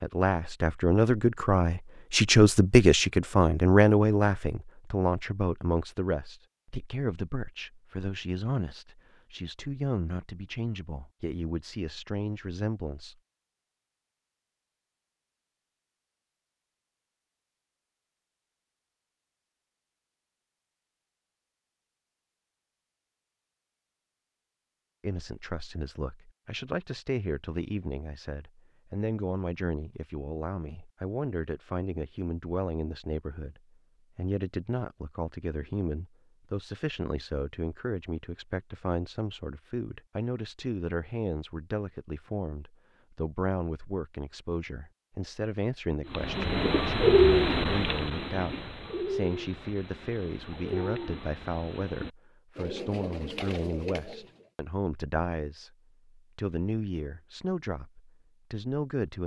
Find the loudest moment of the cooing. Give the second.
47 s.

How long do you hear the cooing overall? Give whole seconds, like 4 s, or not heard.
8 s.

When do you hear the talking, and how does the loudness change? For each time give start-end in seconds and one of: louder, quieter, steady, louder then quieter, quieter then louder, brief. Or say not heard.
0.0-13.2 quieter
25.0-59.2 steady.